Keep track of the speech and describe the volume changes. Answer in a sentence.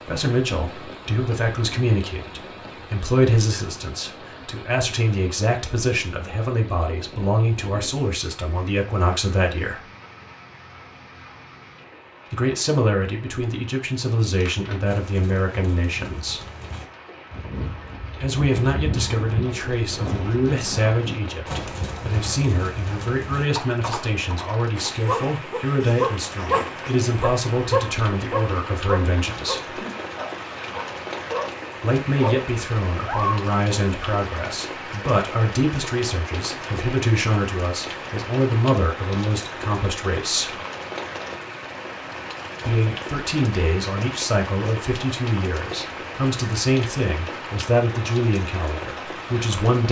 The volume of the speech stays about the same.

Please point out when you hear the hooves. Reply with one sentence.
You can hear the hooves from 14.3 to 25.0 s.